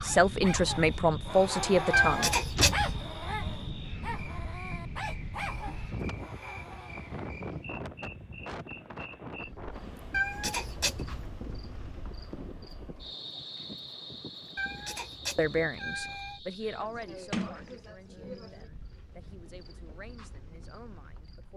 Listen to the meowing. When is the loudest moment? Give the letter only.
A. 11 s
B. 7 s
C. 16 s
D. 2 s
D.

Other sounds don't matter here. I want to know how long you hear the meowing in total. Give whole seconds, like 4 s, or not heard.
4 s.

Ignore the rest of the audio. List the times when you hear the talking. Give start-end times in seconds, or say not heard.
0.0-2.3, 15.3-21.5.